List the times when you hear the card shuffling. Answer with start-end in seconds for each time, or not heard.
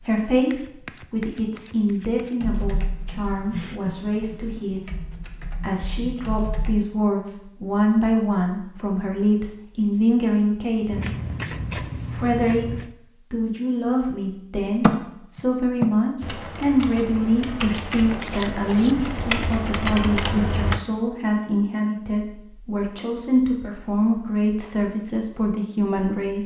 0.5-2.4, 10.9-12.9, 18.0-18.9.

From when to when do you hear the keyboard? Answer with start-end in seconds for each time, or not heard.
2.4-6.8, 14.8-20.8.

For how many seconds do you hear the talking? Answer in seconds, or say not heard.
26 s.